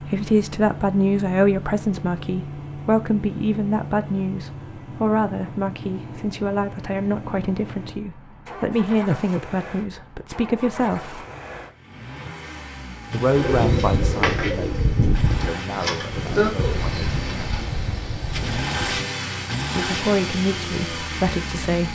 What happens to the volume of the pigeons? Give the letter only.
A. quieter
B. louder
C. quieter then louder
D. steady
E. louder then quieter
A.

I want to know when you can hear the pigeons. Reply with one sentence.
You can hear the pigeons from 13.3 to 19.0 s.